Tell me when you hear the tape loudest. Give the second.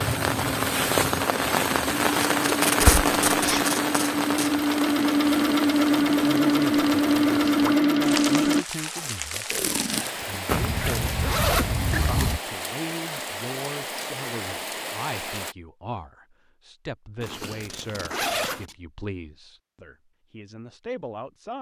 3 s.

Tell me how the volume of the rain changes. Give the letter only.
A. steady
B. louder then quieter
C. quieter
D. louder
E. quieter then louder
C.